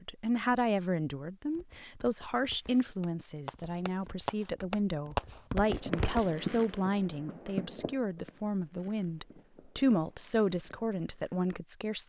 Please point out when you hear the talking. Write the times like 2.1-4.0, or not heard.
0.0-12.0.